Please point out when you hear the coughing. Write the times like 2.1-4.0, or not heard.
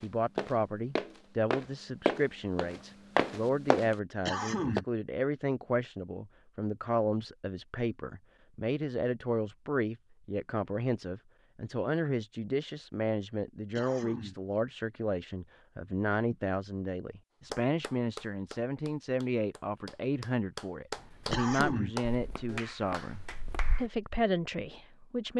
4.2-4.8, 13.8-14.6, 21.3-22.1.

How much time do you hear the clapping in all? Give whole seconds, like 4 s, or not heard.
6 s.